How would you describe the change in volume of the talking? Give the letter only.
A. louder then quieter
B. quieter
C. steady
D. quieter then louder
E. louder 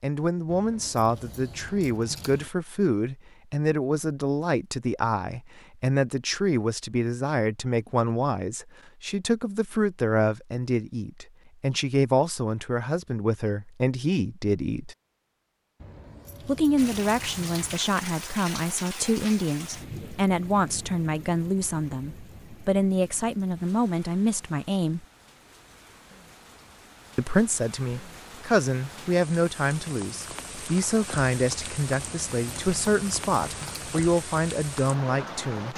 C.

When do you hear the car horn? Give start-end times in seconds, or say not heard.
not heard.